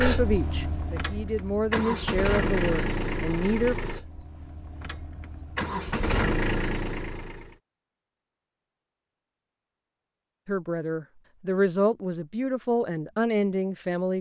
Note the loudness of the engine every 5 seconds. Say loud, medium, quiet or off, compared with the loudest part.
loud, loud, off.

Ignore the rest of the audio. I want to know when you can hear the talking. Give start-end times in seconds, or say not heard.
0.0-3.8, 10.4-14.1.